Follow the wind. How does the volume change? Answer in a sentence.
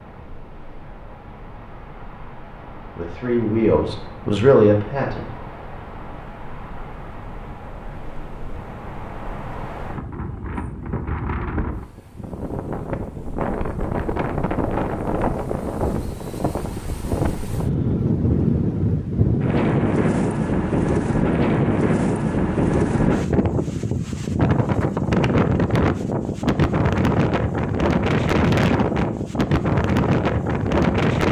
The volume of the wind goes up.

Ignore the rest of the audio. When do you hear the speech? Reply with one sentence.
You can hear the speech from 3.0 to 5.2 s.